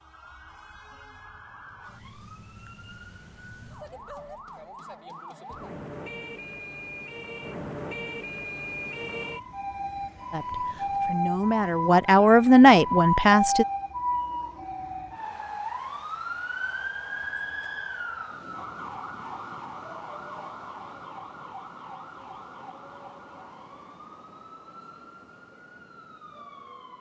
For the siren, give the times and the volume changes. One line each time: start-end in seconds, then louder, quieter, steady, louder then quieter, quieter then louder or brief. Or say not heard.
0.0-26.9 louder then quieter.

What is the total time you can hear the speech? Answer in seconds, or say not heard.
3 s.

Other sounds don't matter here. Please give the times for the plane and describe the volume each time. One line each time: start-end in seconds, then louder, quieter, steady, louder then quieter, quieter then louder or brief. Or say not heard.
not heard.